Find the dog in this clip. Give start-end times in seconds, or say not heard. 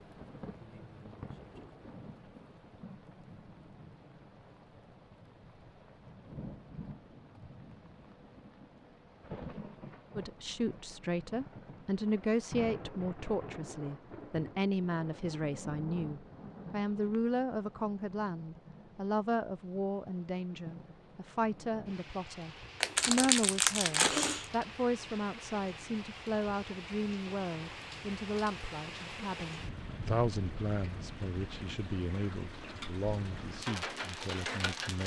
not heard.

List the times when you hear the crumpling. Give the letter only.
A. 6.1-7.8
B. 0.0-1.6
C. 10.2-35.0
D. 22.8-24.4
D.